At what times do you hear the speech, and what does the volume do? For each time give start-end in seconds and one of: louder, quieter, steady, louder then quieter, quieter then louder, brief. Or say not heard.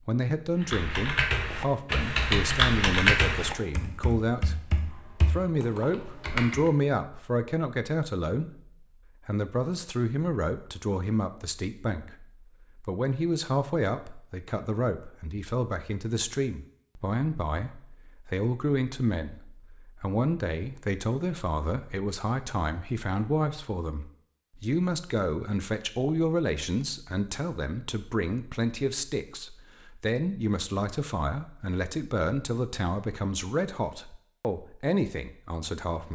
0.1-36.1 steady.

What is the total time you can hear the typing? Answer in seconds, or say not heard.
6 s.